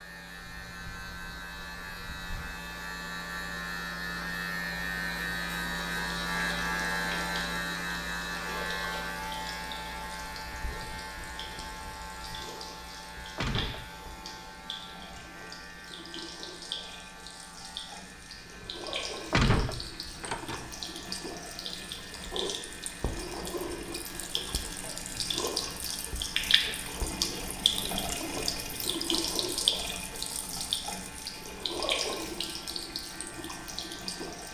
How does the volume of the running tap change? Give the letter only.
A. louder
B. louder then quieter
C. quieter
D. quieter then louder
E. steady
A.